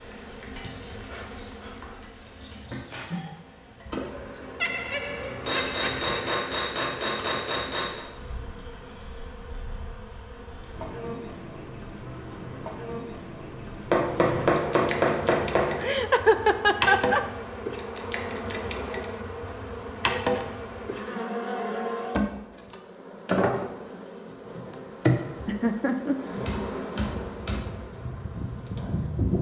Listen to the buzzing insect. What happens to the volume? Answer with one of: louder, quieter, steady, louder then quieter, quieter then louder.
louder.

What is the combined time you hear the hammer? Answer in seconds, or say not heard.
6 s.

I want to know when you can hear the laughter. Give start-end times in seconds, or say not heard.
4.6-6.2, 15.8-17.2, 25.4-26.1.